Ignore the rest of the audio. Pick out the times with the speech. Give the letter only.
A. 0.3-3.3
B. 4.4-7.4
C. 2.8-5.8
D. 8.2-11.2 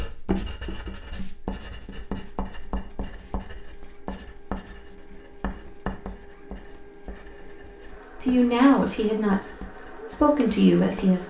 D.